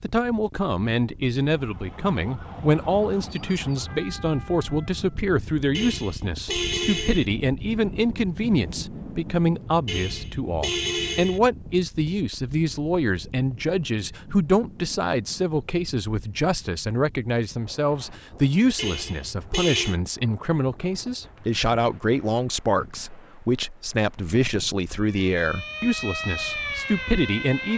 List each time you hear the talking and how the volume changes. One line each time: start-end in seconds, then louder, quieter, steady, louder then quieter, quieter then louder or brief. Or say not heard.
0.0-27.7 steady.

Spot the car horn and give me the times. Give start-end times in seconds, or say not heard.
5.7-7.2, 9.8-11.4, 18.8-19.9.